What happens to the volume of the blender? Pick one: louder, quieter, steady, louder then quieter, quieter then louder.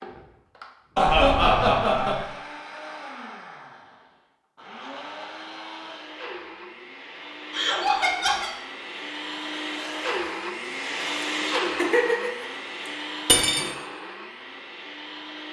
louder then quieter.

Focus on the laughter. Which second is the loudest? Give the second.
1 s.